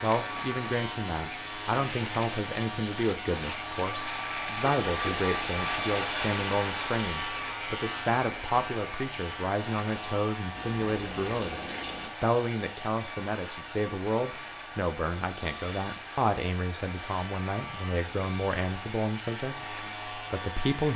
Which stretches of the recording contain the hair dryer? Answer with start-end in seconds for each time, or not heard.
0.1-20.9.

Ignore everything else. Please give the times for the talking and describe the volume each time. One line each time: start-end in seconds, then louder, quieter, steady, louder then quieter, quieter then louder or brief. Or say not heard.
0.0-20.9 steady.